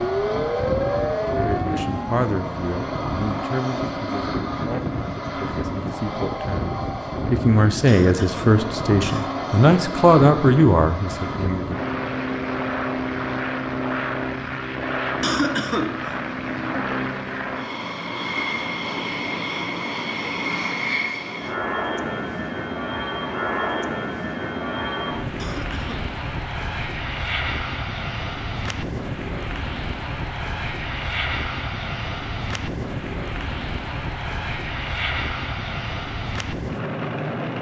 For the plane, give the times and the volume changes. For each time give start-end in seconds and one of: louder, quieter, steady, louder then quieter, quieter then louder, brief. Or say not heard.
0.0-37.5 steady.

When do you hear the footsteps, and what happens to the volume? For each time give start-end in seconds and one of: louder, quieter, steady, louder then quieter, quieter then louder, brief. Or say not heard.
not heard.